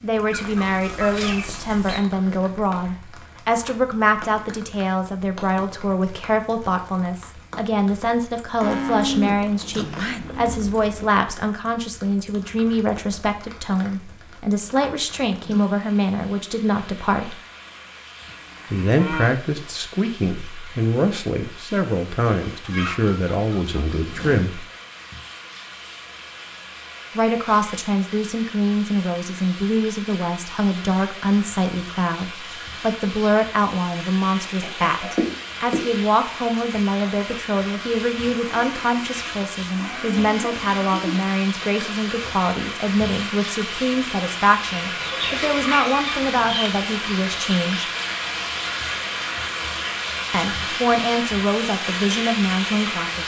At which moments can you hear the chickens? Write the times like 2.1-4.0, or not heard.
0.3-2.0, 22.5-24.4, 34.6-35.9, 44.9-46.7.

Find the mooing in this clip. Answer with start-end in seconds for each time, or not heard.
8.6-11.1, 18.2-19.8, 38.5-41.2.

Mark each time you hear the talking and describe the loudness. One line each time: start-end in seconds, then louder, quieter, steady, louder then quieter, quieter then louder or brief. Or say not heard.
0.0-17.4 steady
18.7-24.6 steady
27.1-47.9 steady
50.3-53.2 brief.